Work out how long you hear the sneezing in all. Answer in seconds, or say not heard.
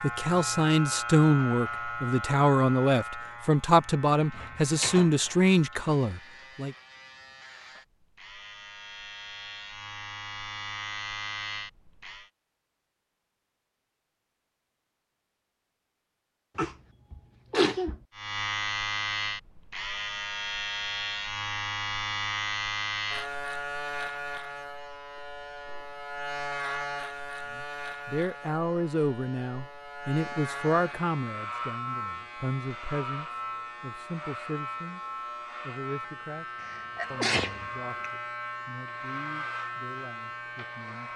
3 s.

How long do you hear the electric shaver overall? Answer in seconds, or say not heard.
35 s.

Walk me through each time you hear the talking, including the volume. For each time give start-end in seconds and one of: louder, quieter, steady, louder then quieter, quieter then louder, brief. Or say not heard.
0.0-6.8 steady
27.5-41.1 quieter.